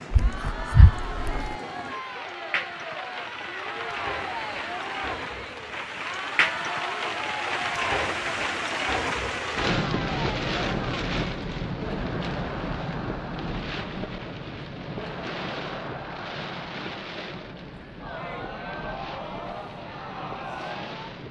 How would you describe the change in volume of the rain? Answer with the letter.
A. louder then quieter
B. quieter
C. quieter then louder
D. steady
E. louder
A.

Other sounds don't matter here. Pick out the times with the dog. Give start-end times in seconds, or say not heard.
0.1-1.6.